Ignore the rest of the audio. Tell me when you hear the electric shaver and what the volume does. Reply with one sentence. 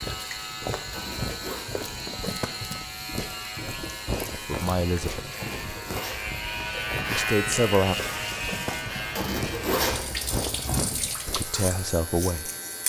The electric shaver can be heard from 0.0 to 12.8 s, getting louder then quieter.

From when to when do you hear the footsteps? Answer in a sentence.
You can hear the footsteps from 0.0 to 11.4 s.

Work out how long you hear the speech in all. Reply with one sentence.
You can hear the speech for 3 seconds altogether.